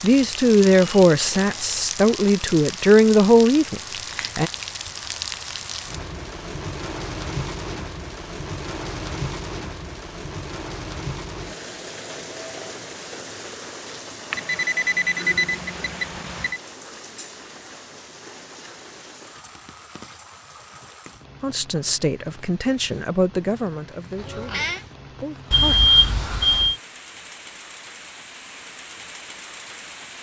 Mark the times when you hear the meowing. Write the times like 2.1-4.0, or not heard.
24.1-24.9.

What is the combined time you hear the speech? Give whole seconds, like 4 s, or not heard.
9 s.